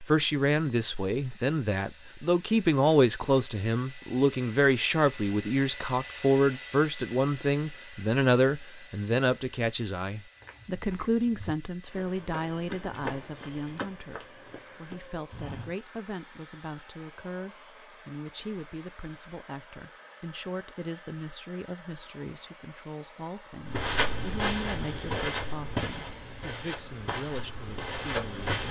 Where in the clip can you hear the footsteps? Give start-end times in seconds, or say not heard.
10.4-15.8, 23.6-28.6.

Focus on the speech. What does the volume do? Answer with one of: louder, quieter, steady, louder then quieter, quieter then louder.
quieter.